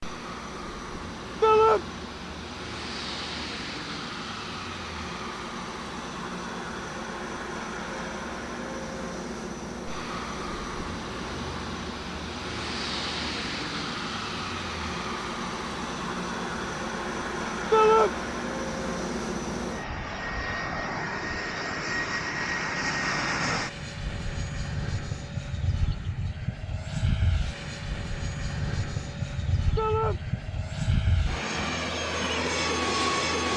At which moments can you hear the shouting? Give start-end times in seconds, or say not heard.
1.4-1.9, 17.7-18.1, 29.8-30.2.